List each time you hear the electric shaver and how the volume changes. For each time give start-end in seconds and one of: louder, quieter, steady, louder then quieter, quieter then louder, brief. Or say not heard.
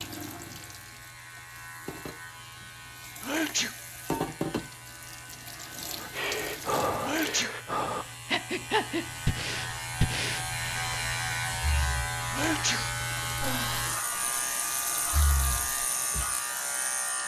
0.0-17.2 louder.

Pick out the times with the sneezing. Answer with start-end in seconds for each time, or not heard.
3.2-3.8, 7.0-7.5, 12.3-12.8.